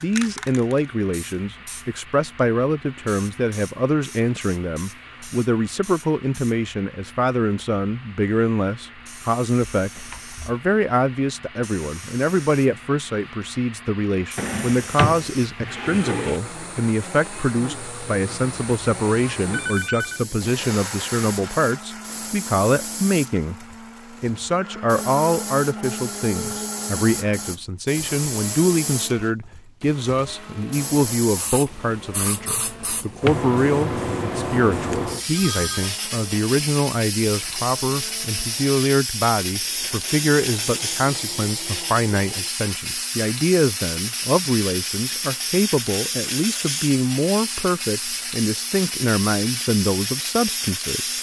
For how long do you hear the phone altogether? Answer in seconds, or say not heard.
2 s.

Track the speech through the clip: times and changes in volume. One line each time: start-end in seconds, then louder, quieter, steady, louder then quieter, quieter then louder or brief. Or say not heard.
0.0-51.1 steady.